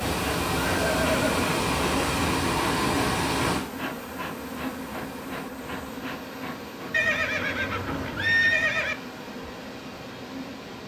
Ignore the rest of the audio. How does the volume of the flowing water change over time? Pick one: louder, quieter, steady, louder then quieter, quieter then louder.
quieter.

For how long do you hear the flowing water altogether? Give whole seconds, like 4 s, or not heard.
11 s.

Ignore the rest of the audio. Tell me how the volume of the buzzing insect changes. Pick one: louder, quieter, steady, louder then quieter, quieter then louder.
quieter.